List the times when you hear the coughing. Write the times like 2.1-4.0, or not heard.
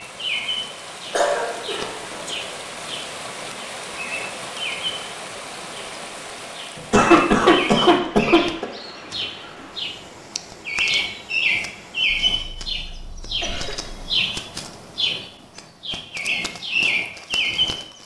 1.1-2.4, 6.8-8.7, 12.3-14.1.